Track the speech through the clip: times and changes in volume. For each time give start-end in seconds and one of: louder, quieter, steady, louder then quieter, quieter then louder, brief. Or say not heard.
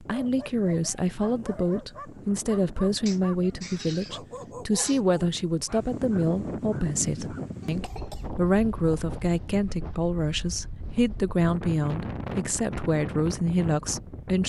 0.0-14.4 steady.